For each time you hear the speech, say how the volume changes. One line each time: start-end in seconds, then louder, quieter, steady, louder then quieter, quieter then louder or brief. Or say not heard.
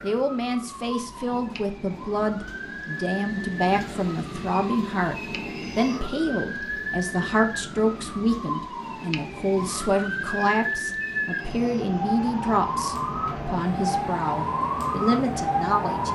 0.0-16.0 steady.